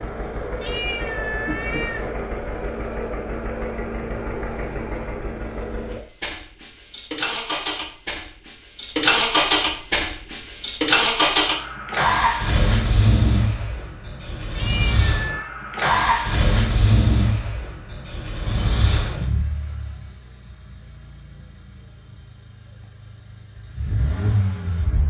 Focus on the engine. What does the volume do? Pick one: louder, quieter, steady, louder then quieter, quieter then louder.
louder then quieter.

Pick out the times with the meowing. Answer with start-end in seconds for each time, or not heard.
0.6-2.1, 14.6-15.5.